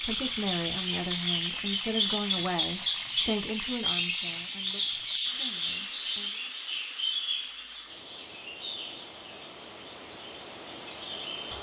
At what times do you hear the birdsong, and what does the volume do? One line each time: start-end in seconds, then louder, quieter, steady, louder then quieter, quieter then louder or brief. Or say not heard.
0.0-11.5 quieter.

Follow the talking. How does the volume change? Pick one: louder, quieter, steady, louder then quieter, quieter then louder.
quieter.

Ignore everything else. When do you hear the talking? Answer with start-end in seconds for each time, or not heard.
0.0-6.4.